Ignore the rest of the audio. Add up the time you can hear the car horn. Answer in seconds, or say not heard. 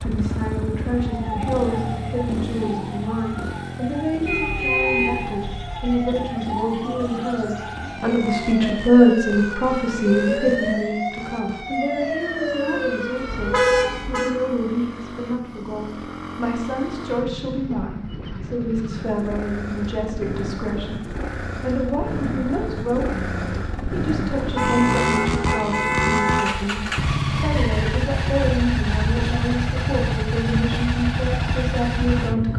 5 s.